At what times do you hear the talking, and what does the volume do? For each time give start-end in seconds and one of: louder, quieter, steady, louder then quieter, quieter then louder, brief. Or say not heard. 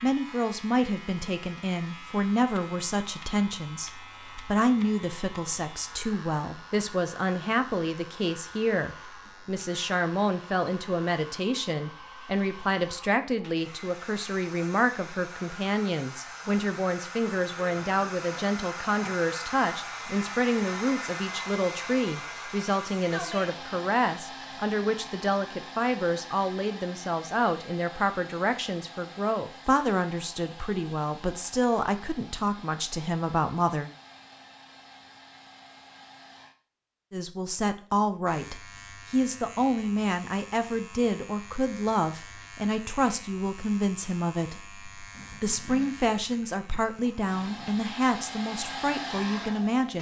0.0-33.9 steady
37.1-49.9 steady.